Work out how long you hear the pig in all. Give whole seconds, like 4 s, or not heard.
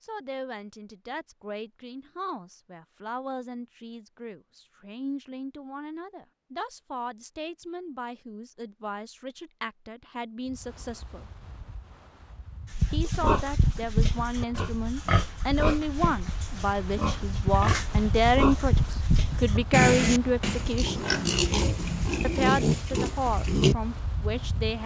11 s.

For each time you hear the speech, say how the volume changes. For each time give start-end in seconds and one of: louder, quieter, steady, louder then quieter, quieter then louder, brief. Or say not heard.
0.0-11.2 steady
12.9-21.1 louder
22.2-24.8 brief.